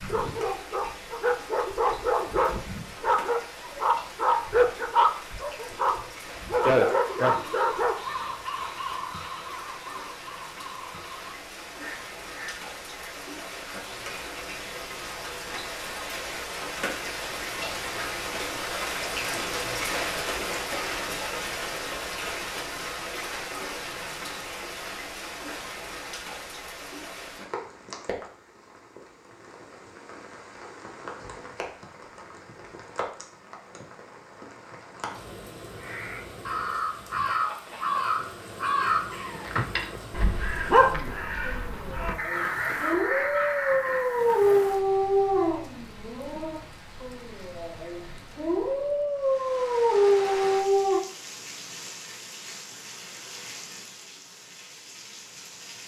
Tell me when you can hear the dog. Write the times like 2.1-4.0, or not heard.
0.0-8.0, 39.5-51.0.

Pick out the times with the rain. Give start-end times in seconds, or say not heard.
0.0-55.8.